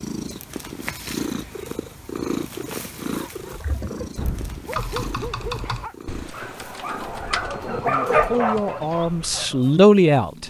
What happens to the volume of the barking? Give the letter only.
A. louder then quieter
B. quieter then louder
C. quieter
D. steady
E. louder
A.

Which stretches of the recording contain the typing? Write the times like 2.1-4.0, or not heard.
3.4-9.4.